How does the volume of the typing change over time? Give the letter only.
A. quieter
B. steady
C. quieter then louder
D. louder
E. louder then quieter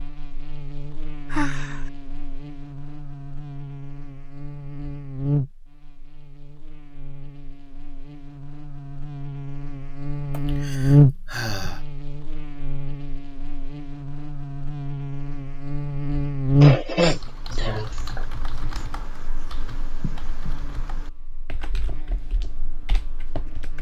A.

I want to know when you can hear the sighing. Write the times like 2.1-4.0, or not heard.
1.3-1.9, 10.3-11.8, 16.6-17.9.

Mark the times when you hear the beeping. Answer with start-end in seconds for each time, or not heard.
not heard.